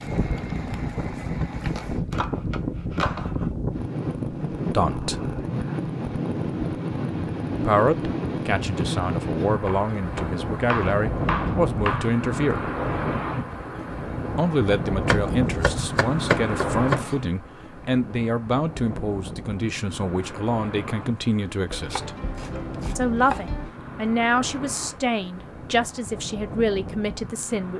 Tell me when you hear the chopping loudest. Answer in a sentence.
The volume of the chopping peaks at 16 seconds.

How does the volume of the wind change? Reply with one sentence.
The volume of the wind goes down.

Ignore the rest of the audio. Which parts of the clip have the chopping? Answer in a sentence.
You can hear the chopping from 1.7 to 3.5 s, from 9.6 to 12.2 s, from 15.1 to 17.1 s and from 21.7 to 23.7 s.